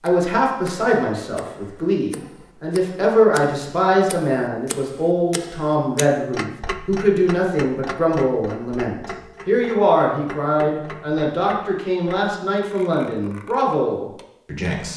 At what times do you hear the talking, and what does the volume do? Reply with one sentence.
You can hear the talking from 0.0 to 14.9 s, at a steady volume.